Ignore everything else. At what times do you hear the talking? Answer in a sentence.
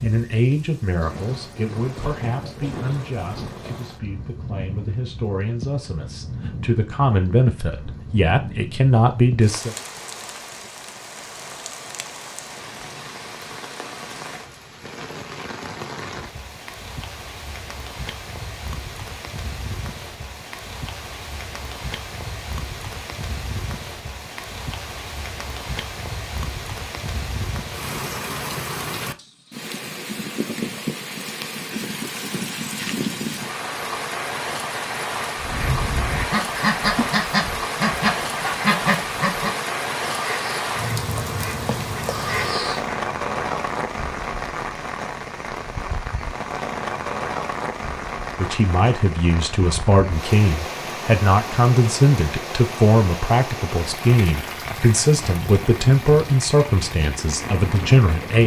You can hear the talking from 0.0 to 9.8 s and from 48.4 to 58.4 s.